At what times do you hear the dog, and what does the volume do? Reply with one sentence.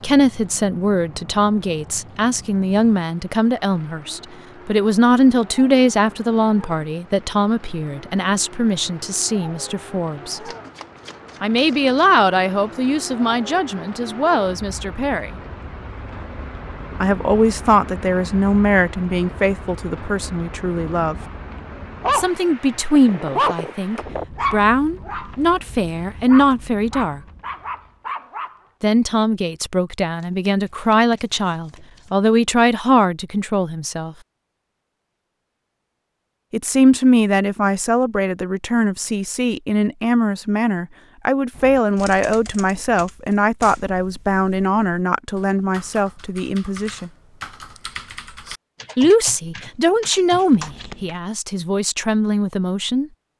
You can hear the dog briefly from 21.7 to 22.2 s; and from 22.9 to 28.6 s, getting quieter then louder.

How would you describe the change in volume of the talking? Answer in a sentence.
The loudness of the talking stays about the same.